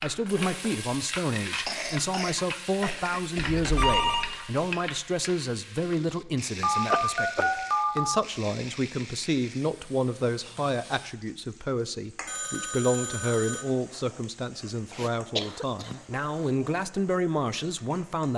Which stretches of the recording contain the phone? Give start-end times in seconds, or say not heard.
3.4-4.5, 6.6-8.1, 12.2-13.7.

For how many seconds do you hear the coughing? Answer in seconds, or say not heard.
4 s.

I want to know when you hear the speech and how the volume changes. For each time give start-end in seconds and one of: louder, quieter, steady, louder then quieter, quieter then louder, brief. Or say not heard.
0.0-18.3 steady.